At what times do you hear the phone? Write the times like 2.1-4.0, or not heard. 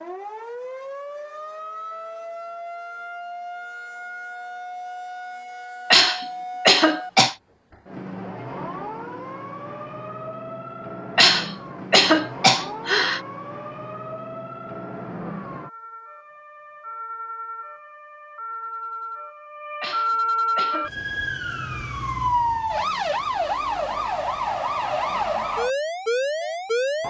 not heard.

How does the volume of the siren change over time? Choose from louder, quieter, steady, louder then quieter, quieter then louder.
louder.